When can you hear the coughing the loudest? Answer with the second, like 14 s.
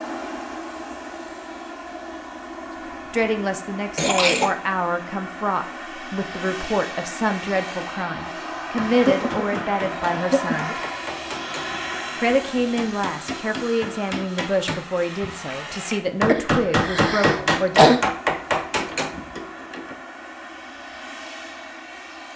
18 s.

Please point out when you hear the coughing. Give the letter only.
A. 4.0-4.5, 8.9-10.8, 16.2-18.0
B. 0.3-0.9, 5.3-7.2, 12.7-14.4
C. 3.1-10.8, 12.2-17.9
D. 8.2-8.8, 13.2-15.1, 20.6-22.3
A.